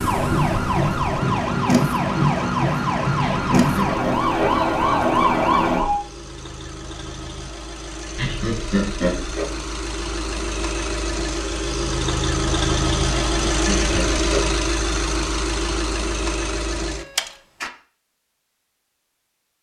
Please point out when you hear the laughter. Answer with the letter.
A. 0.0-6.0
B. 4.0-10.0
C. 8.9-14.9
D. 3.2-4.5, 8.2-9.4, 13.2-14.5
D.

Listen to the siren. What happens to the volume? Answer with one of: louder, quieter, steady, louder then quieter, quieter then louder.
steady.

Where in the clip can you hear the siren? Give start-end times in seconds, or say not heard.
0.0-6.0.